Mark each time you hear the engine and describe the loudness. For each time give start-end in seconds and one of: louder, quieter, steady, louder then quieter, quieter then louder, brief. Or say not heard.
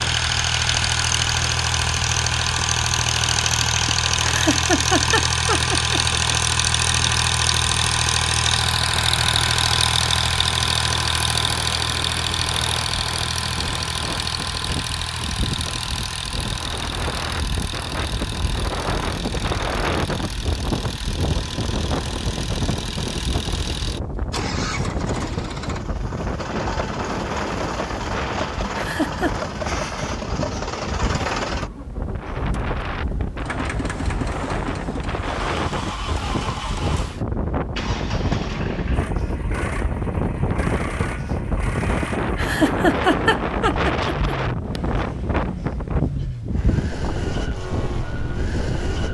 0.0-49.1 quieter.